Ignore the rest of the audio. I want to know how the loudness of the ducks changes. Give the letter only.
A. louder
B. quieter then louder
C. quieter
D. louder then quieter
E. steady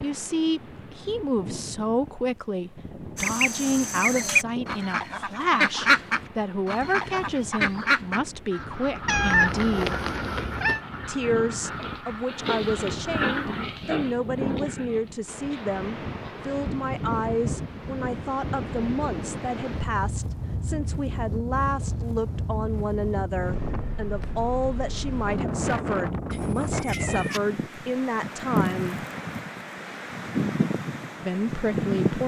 C.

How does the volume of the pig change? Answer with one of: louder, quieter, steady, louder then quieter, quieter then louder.
louder then quieter.